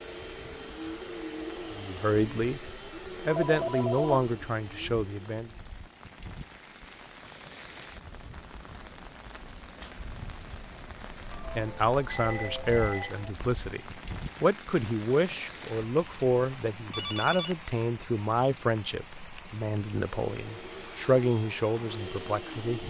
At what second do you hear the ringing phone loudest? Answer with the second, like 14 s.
4 s.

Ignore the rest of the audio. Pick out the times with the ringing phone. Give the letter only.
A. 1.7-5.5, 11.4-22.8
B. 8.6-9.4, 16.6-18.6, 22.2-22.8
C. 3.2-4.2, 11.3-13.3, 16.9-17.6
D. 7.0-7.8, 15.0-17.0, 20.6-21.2
C.